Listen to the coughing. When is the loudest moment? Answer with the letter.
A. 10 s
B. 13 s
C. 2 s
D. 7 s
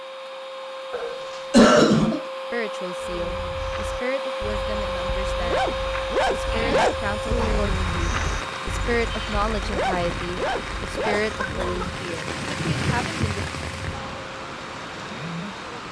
C.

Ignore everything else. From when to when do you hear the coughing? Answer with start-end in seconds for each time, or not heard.
0.9-2.2, 6.5-7.7, 11.2-11.9.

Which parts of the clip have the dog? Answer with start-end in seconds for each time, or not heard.
3.0-11.8.